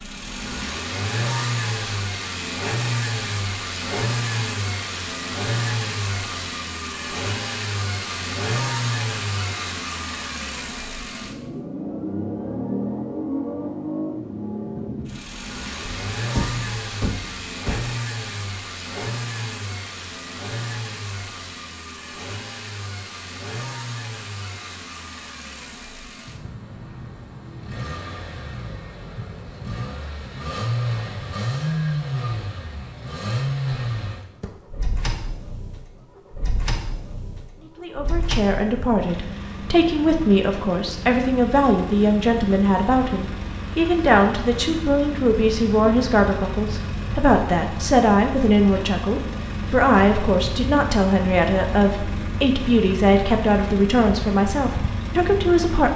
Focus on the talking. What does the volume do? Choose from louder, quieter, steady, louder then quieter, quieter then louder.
steady.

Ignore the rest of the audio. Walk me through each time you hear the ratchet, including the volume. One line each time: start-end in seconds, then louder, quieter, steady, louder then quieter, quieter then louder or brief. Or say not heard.
not heard.